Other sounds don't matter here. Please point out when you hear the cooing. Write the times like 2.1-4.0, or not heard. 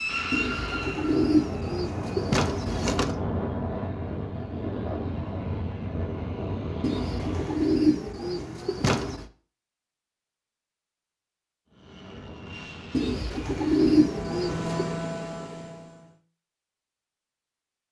0.3-3.1, 6.8-9.2, 12.9-14.9.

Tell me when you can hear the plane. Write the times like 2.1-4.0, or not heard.
0.0-7.8, 11.7-16.1.